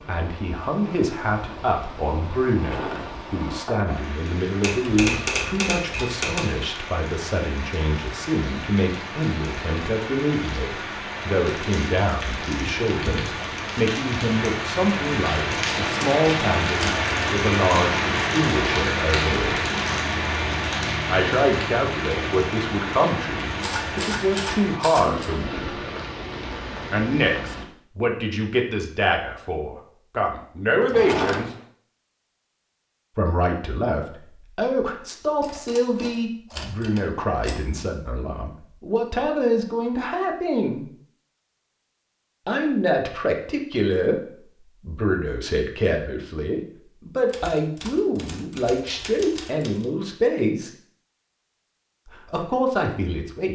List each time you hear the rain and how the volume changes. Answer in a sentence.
You can hear the rain from 0.0 to 27.6 s, getting louder then quieter.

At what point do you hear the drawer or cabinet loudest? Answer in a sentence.
The volume of the drawer or cabinet peaks at 31 seconds.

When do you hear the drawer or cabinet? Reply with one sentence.
The drawer or cabinet can be heard from 2.5 to 4.2 s and from 30.8 to 31.6 s.